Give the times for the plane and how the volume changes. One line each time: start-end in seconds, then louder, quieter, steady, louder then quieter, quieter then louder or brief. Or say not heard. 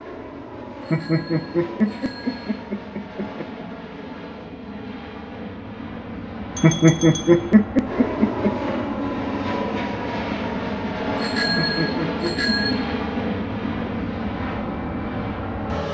0.0-15.8 louder.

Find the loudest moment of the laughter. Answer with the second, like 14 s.
7 s.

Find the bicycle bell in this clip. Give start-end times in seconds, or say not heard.
0.8-2.6, 6.5-7.3, 11.2-12.8.